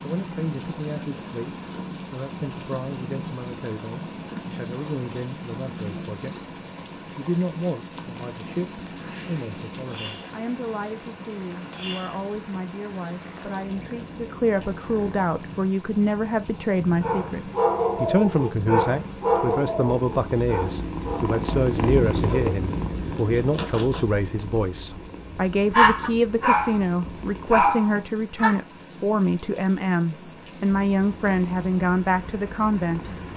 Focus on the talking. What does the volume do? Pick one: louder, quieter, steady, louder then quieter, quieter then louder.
louder.